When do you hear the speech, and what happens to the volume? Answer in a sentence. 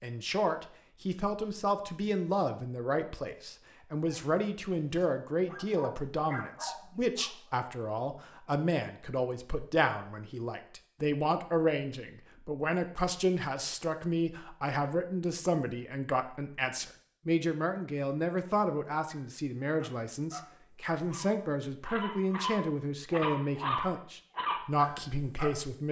You can hear the speech from 0.0 to 25.8 s, at a steady volume.